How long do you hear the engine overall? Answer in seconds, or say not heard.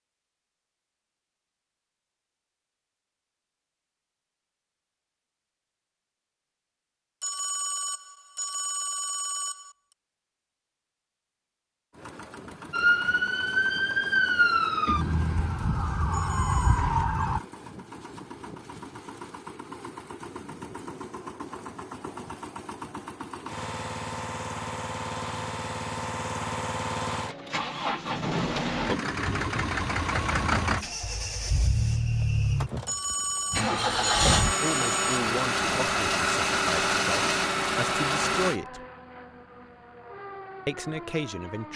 27 s.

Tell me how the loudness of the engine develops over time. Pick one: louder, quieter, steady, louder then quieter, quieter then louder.
louder.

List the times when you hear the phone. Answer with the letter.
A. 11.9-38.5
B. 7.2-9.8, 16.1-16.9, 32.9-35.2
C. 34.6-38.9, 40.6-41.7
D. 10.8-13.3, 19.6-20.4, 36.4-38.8
B.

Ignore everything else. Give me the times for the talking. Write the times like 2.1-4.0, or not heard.
34.6-38.9, 40.6-41.7.